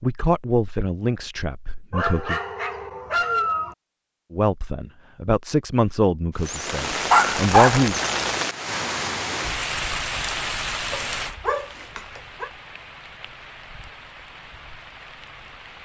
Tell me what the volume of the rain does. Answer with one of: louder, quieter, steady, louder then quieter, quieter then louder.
quieter.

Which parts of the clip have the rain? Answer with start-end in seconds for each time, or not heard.
6.3-15.7.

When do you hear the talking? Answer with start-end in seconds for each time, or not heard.
0.0-2.4, 4.3-8.0.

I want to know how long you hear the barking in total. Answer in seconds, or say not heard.
5 s.